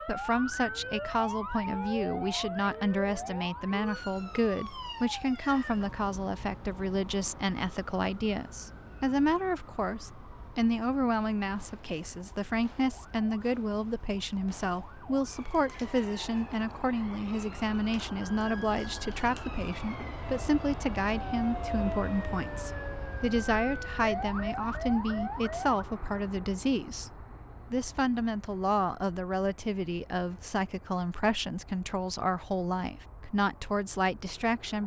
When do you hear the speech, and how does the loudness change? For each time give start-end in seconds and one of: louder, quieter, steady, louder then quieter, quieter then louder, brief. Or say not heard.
0.1-34.8 steady.